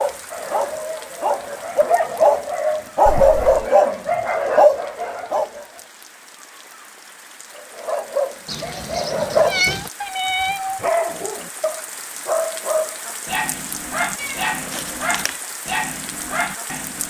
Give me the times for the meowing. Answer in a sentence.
The meowing can be heard from 3.0 to 3.7 s, from 8.4 to 9.9 s and from 14.2 to 15.3 s.